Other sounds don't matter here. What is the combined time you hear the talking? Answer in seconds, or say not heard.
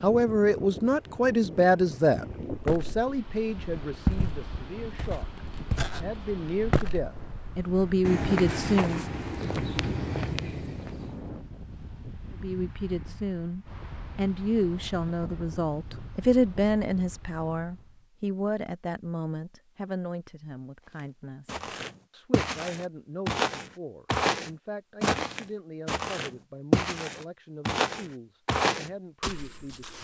27 s.